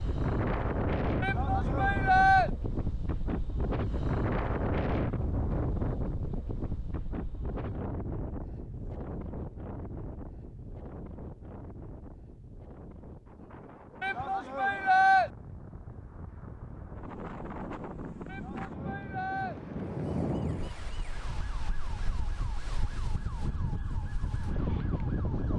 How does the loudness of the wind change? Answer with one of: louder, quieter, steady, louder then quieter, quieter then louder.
quieter then louder.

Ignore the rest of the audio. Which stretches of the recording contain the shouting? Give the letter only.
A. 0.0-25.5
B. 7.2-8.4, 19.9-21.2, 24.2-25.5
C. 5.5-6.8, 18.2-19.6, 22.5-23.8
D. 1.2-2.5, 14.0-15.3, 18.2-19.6
D.